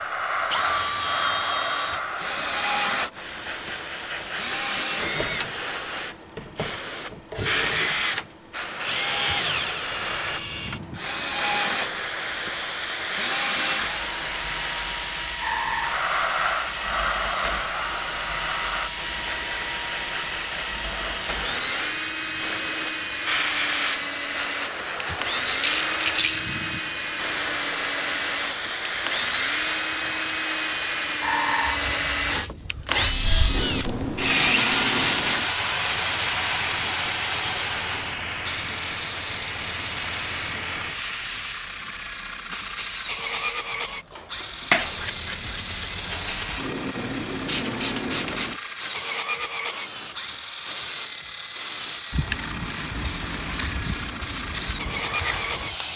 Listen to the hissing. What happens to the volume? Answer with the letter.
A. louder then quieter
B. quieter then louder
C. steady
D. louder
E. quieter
C.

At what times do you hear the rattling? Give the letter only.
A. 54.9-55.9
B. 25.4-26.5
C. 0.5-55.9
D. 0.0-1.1
B.